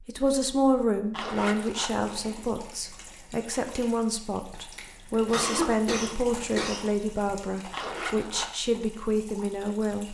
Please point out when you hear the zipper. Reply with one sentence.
You can hear the zipper from 1.1 to 1.9 s and from 7.7 to 8.5 s.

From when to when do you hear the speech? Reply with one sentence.
You can hear the speech from 0.0 to 10.0 s.